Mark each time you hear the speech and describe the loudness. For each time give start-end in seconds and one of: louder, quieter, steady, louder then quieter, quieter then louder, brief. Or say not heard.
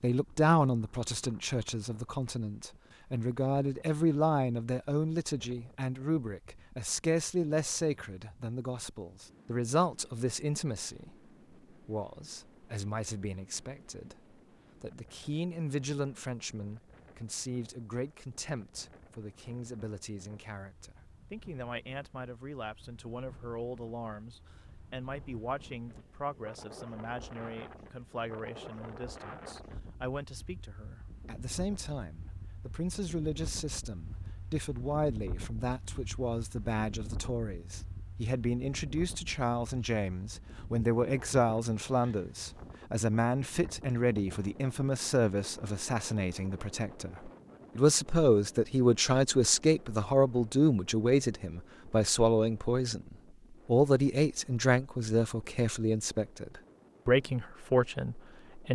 0.0-58.7 quieter then louder.